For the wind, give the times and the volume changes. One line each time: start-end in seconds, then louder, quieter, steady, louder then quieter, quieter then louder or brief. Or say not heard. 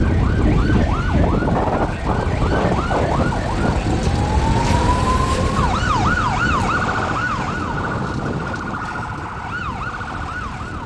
0.0-10.8 quieter.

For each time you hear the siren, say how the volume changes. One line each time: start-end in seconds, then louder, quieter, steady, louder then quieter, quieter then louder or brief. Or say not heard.
0.0-10.8 louder then quieter.